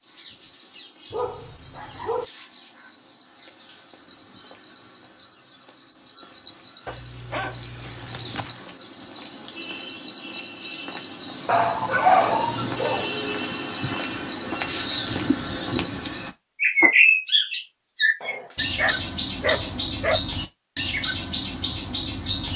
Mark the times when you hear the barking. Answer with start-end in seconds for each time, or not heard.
1.1-2.2, 6.8-8.6, 11.4-13.1, 18.2-20.2.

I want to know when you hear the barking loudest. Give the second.
12 s.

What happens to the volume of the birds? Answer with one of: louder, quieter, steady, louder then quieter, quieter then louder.
louder.